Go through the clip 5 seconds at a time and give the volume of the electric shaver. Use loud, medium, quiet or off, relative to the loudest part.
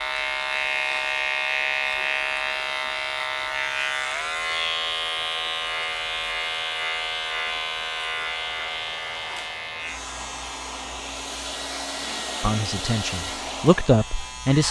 loud, loud, quiet.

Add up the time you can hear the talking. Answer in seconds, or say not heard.
2 s.